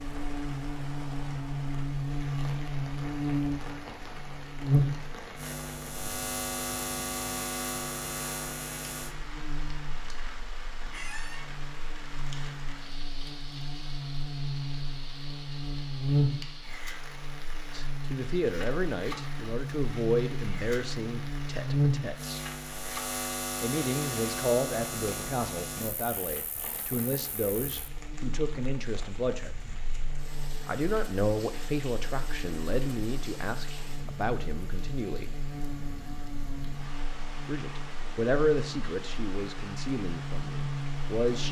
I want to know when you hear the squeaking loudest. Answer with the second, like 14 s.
11 s.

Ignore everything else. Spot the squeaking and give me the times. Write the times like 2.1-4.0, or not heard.
10.9-11.4, 26.1-26.8.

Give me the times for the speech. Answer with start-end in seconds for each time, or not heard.
17.7-22.4, 23.6-29.6, 30.6-35.3, 37.5-41.4.